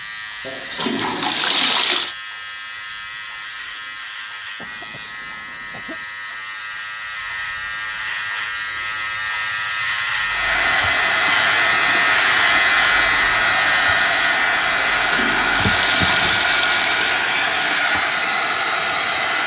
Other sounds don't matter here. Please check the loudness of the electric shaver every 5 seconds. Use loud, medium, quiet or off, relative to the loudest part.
quiet, medium, loud, medium.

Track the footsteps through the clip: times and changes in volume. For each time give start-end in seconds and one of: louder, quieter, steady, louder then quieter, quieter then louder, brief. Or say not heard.
not heard.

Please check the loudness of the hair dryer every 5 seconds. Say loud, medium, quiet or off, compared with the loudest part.
off, off, loud, loud.